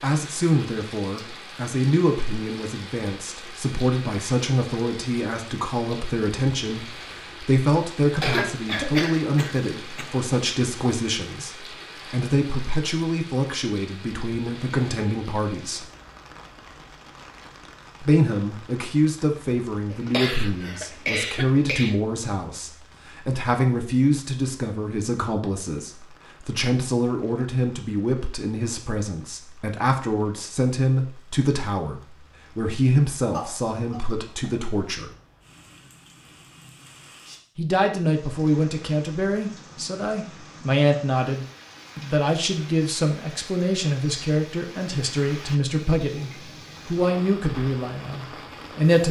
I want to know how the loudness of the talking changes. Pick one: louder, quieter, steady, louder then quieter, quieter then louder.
steady.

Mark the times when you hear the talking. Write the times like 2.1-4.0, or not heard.
0.0-15.8, 18.0-35.1, 37.5-49.0.